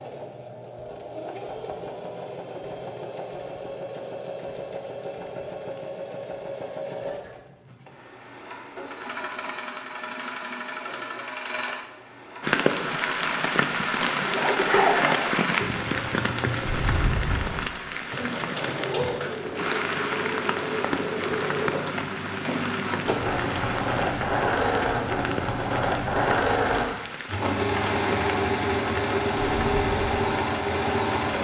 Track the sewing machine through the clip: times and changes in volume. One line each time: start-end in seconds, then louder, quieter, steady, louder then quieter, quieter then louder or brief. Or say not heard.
0.0-31.3 louder.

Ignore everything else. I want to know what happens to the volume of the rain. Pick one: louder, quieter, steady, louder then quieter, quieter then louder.
quieter.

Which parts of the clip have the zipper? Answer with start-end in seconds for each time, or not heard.
14.2-15.7.